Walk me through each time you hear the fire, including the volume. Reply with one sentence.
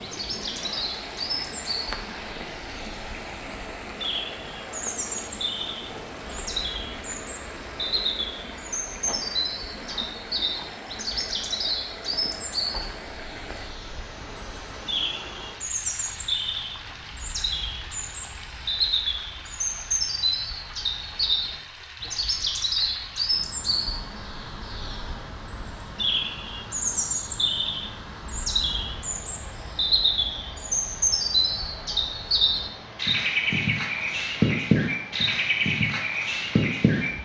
The fire can't be heard in this clip.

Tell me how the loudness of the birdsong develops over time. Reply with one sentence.
The volume of the birdsong goes up.